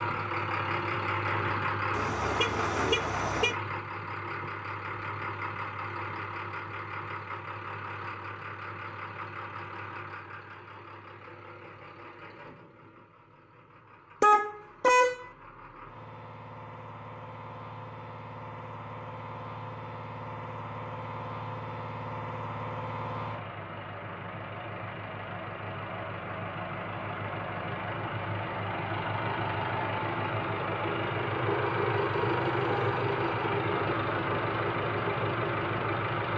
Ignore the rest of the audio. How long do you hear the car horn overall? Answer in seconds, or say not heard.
3 s.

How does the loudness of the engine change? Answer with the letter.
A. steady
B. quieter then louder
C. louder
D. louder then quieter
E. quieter
B.